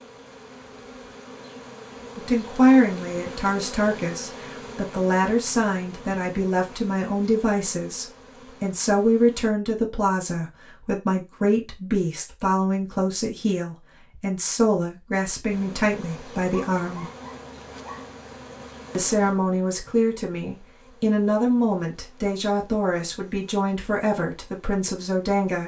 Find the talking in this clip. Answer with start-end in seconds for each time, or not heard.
2.1-17.1, 18.9-25.6.